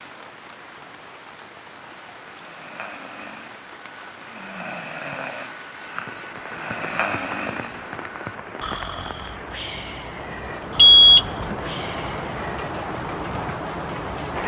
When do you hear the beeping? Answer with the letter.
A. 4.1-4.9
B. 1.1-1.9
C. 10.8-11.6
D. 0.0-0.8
C.